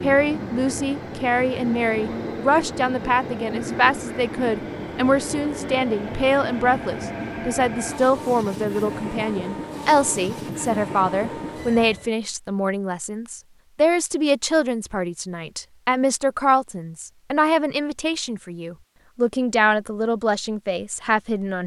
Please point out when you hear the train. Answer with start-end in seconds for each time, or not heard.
0.0-12.1.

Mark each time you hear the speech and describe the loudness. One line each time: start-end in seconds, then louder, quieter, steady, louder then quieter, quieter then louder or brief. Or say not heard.
0.0-21.6 steady.